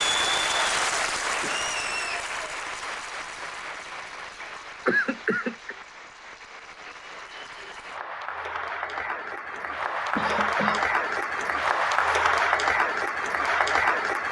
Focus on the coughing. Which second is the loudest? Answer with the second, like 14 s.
5 s.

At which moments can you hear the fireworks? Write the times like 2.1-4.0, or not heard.
not heard.